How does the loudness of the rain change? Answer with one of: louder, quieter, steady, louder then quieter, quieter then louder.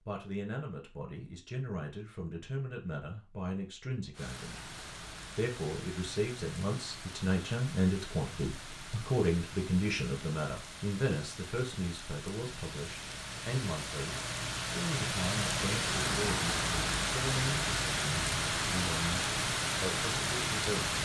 louder.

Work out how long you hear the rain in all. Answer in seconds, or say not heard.
17 s.